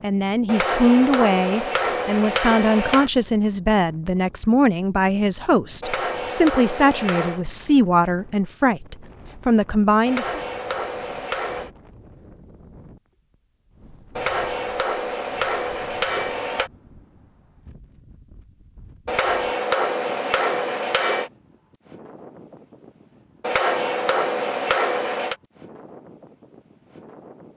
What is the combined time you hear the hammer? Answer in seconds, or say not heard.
13 s.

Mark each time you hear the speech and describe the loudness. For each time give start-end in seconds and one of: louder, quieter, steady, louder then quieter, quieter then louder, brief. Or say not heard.
0.0-10.4 steady.